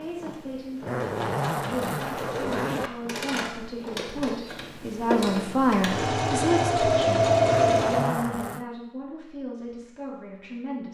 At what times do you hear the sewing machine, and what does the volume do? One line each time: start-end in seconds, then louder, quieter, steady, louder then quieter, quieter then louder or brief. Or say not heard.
0.0-8.1 louder.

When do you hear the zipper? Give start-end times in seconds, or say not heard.
0.8-2.9, 7.5-8.7.